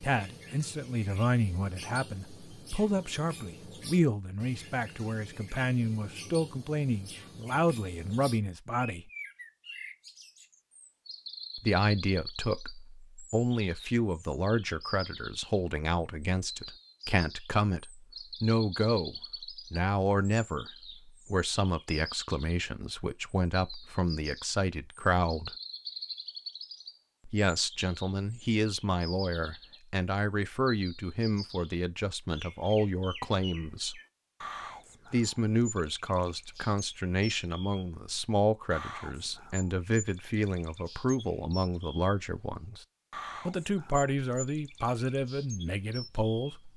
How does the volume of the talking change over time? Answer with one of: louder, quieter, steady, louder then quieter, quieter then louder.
steady.